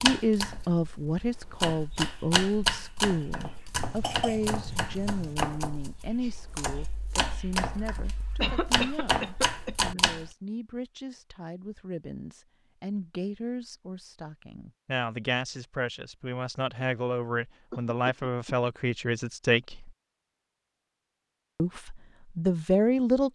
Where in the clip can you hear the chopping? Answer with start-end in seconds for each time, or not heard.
0.0-10.3.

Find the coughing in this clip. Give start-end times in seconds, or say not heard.
3.8-5.3, 8.4-10.0, 17.7-18.7.